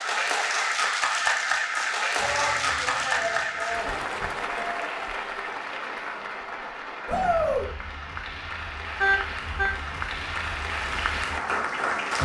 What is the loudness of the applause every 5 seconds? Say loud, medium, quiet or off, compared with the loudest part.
loud, medium, loud.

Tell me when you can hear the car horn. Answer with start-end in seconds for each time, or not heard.
9.0-9.8.